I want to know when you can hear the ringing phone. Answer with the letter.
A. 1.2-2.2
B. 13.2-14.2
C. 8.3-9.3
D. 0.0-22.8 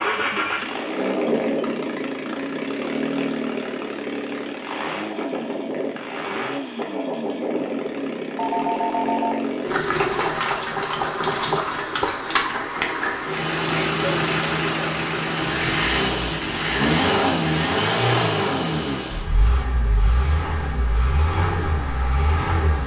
C.